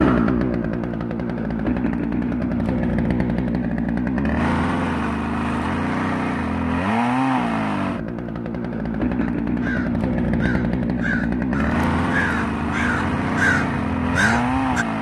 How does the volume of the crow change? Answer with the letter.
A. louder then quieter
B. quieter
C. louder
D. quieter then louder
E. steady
C.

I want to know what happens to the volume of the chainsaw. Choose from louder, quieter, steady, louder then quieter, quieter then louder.
steady.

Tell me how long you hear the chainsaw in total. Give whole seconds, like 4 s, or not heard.
15 s.